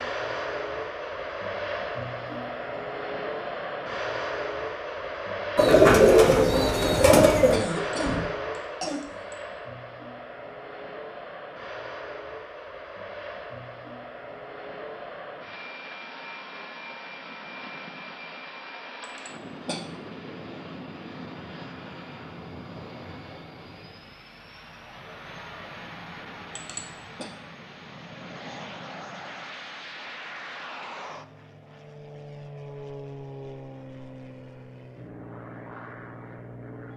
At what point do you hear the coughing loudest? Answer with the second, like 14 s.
8 s.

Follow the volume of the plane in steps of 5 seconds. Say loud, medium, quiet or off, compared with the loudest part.
loud, loud, medium, medium, medium, medium, medium, medium.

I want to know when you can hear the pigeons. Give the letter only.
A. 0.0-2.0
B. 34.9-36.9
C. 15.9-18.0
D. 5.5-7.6
D.